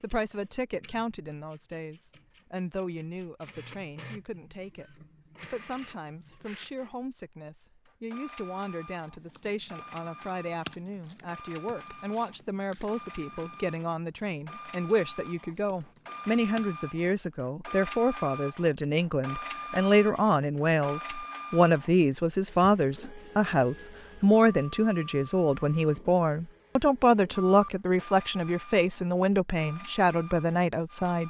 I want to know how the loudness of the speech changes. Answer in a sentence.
The volume of the speech goes up.